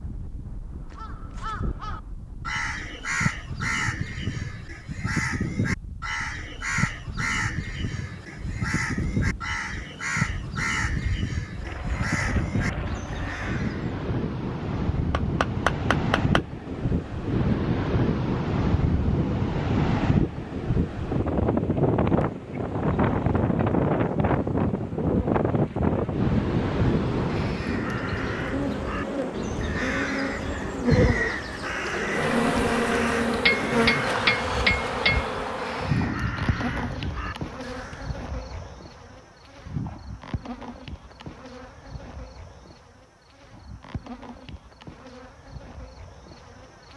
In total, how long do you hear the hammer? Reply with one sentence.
You can hear the hammer for 3 seconds altogether.